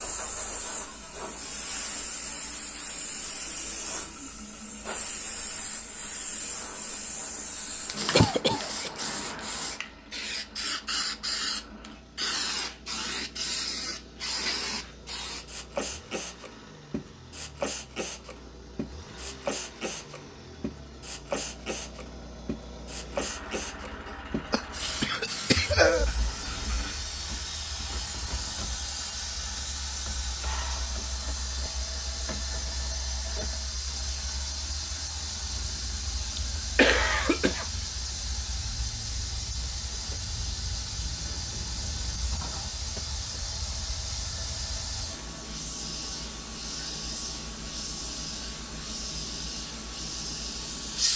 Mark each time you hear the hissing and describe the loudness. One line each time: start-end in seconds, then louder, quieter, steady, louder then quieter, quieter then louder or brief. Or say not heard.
0.0-51.1 steady.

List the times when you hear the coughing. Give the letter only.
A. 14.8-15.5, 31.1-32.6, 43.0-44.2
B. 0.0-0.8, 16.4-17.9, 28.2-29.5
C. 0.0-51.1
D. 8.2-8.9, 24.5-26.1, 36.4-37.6
D.